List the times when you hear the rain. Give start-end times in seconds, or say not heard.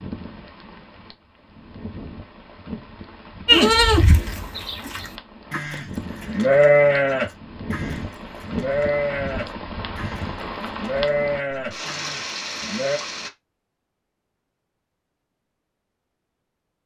0.0-13.3.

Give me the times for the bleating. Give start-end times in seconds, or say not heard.
3.5-13.0.